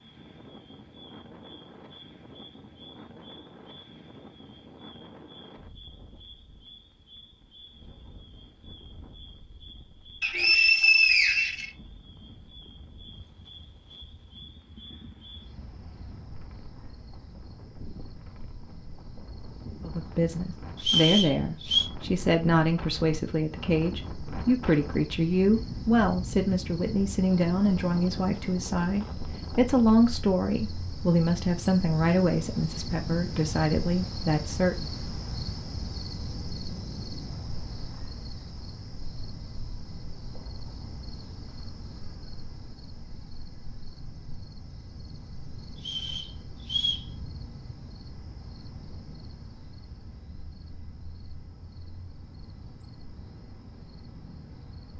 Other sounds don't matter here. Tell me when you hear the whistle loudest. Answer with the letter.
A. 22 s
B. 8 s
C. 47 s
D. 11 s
D.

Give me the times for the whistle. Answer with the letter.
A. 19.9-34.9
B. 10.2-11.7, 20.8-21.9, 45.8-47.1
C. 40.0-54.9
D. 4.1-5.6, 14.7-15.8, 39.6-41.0
B.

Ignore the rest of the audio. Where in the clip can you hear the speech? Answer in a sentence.
You can hear the speech from 19.9 to 34.9 s.